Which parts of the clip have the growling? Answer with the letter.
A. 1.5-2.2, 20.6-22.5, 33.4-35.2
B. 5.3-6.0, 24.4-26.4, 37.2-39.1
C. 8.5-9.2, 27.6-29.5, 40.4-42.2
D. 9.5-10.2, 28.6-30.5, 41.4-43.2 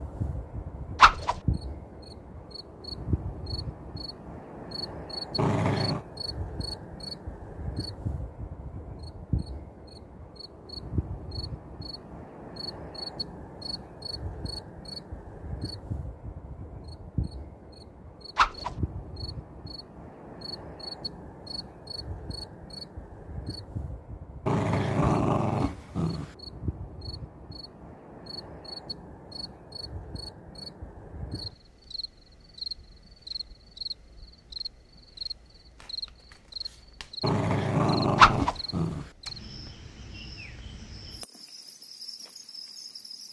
B.